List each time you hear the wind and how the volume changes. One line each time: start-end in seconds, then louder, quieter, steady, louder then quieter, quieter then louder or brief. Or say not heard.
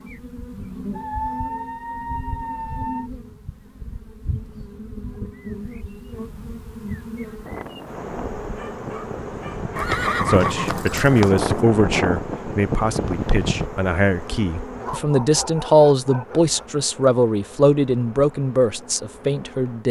0.0-13.7 louder.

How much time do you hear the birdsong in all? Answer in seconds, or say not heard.
not heard.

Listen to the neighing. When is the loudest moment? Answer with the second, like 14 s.
10 s.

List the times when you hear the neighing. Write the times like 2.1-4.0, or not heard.
9.8-11.7.